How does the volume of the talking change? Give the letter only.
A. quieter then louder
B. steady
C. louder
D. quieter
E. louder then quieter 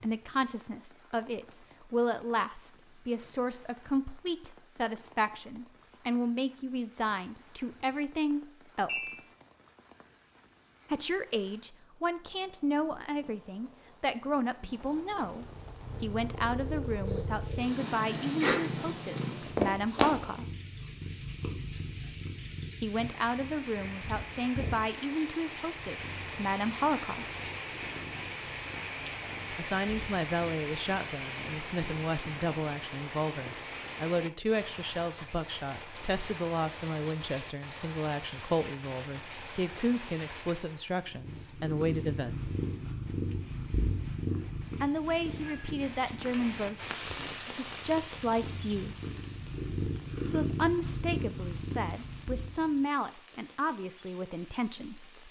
B.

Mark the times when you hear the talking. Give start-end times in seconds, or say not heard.
0.0-9.3, 10.9-20.4, 22.8-27.2, 29.6-42.4, 44.8-49.0, 50.2-55.0.